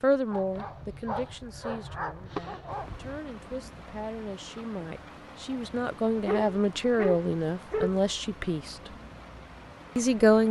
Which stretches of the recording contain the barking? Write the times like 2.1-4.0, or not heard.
0.3-3.1, 6.2-8.0.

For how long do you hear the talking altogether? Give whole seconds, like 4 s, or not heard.
9 s.